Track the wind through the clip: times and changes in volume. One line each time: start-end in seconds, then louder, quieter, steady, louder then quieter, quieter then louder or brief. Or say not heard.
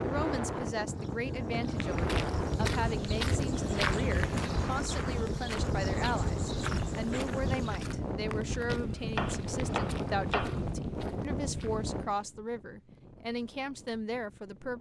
0.0-14.7 quieter.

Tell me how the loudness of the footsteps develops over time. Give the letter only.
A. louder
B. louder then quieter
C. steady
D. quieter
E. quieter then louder
D.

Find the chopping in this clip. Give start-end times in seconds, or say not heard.
9.2-10.8.